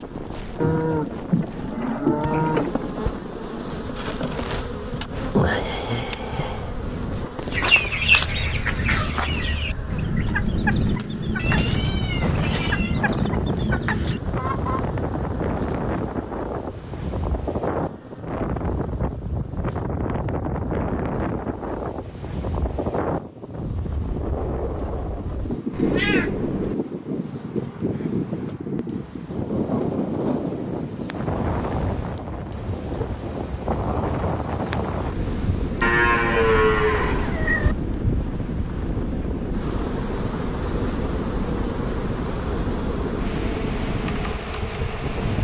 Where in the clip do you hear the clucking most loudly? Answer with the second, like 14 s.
8 s.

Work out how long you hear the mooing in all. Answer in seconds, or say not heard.
4 s.